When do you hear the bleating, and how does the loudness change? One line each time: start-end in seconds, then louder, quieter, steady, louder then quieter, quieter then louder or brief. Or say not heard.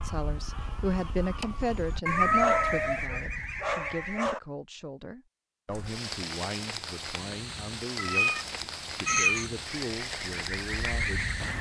not heard.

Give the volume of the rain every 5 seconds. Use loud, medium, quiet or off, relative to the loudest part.
off, loud, loud.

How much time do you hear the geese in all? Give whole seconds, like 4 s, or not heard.
6 s.